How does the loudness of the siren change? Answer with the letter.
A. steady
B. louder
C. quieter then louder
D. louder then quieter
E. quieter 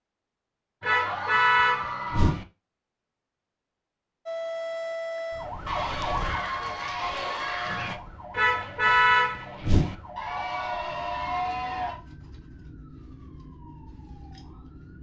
E.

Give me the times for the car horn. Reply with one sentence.
The car horn can be heard from 0.8 to 2.5 s and from 8.3 to 9.9 s.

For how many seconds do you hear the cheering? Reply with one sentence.
The cheering can be heard for 6 seconds in total.